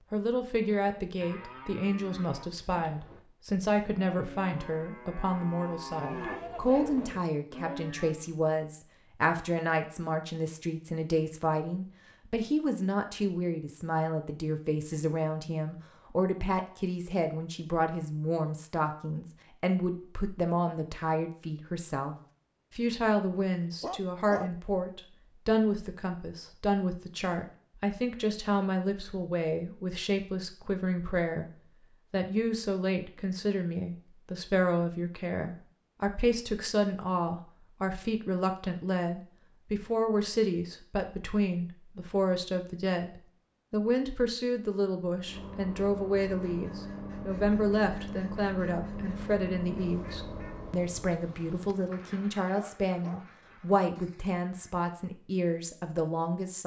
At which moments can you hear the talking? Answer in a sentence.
You can hear the talking from 0.1 to 22.1 s, from 22.8 to 31.4 s and from 32.1 to 56.6 s.